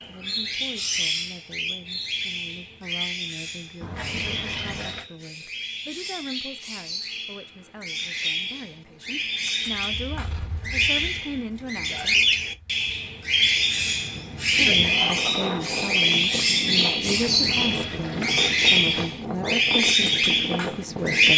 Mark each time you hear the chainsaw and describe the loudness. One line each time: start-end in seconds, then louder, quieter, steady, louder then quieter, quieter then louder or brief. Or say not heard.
not heard.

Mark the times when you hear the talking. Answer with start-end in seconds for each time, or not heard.
0.0-12.2, 14.6-21.3.